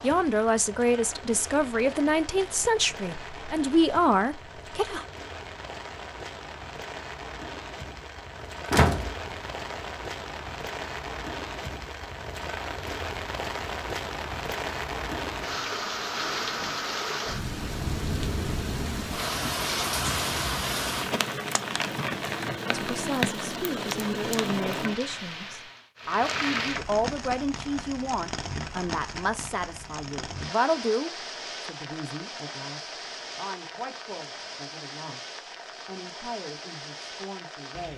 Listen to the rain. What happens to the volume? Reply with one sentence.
The loudness of the rain goes up, then down.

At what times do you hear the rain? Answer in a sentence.
The rain can be heard from 0.0 to 37.9 s.